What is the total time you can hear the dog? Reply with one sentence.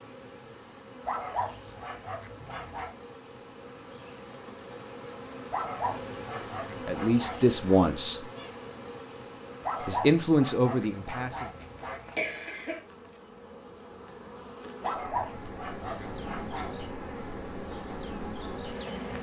You can hear the dog for 9 seconds altogether.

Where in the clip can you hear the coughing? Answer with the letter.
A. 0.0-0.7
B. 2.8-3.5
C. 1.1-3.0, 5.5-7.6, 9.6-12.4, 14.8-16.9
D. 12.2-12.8
D.